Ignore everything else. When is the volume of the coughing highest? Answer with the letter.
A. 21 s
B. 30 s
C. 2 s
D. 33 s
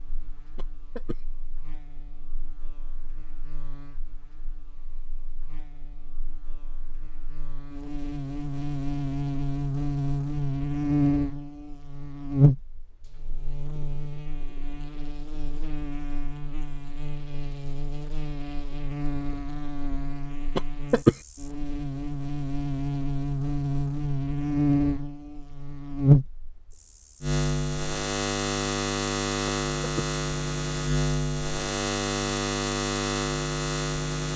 A.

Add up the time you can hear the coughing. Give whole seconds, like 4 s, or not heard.
2 s.